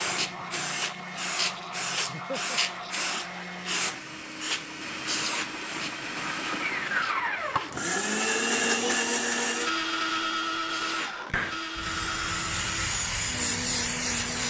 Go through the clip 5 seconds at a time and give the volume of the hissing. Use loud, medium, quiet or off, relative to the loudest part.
loud, medium, loud.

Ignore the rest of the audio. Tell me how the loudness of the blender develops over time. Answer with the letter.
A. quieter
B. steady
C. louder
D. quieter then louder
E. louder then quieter
E.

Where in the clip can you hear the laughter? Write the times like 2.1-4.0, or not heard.
2.0-2.6.